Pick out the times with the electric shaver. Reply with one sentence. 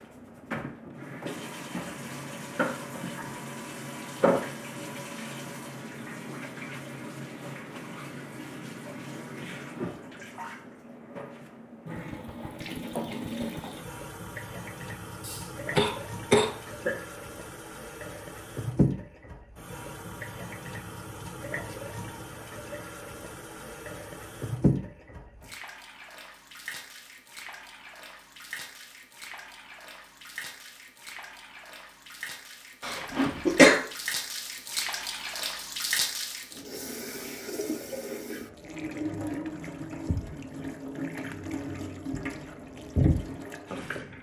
The electric shaver can't be heard in this clip.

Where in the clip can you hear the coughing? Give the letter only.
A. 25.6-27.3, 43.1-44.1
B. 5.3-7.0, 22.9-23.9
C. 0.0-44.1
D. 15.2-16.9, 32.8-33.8
D.